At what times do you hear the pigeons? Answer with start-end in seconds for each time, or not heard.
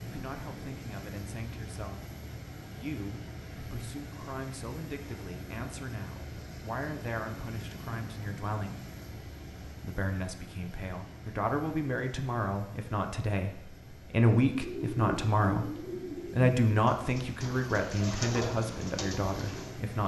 14.5-19.8.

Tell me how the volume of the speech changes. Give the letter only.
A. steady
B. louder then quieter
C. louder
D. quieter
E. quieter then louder
C.